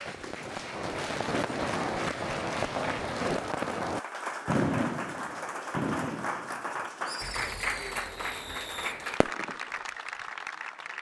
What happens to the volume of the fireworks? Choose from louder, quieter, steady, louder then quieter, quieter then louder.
quieter.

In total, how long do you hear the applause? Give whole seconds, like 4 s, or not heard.
11 s.